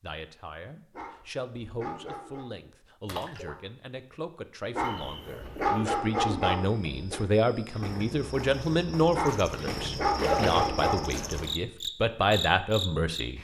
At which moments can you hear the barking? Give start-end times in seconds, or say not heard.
0.9-2.5, 4.7-7.2, 9.1-11.2.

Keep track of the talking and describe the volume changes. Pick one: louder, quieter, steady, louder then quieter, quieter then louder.
louder.